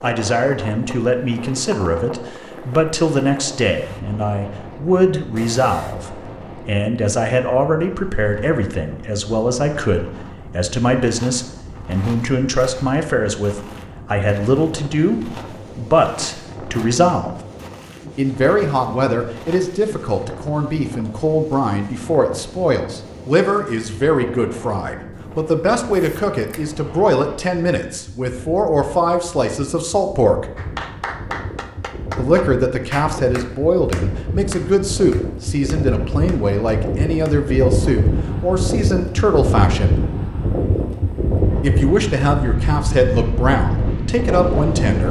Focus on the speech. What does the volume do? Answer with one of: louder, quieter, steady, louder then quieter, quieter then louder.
steady.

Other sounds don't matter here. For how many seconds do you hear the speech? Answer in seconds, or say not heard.
41 s.